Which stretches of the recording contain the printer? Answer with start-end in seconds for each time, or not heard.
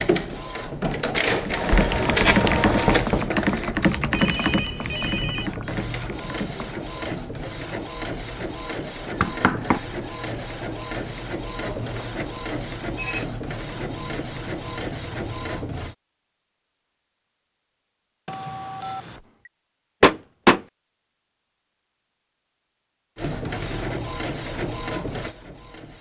0.0-15.9, 23.1-25.9.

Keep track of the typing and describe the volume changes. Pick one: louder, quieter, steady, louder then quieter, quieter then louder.
quieter.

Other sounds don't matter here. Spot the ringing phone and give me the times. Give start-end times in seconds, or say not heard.
4.1-5.5, 11.7-13.2, 18.2-19.5.